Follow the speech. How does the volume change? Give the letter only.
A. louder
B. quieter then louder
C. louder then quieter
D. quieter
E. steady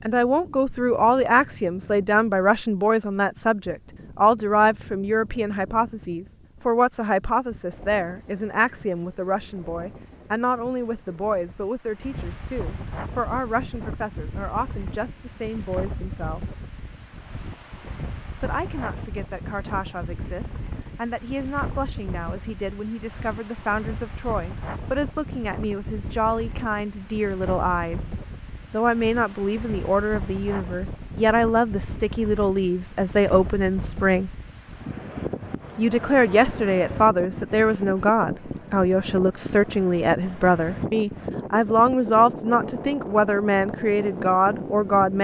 B.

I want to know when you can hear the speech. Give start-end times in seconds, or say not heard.
0.1-16.6, 18.4-28.1, 28.7-34.3, 35.8-45.1.